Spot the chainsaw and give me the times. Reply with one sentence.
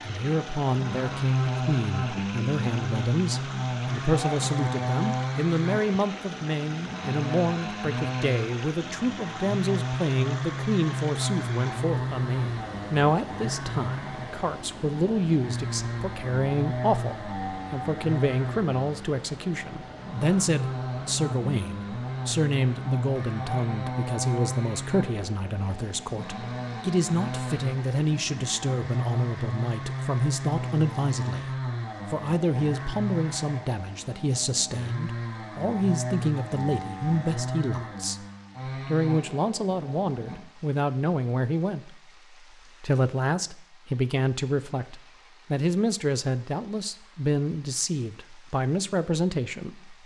You can hear the chainsaw from 0.0 to 40.4 s.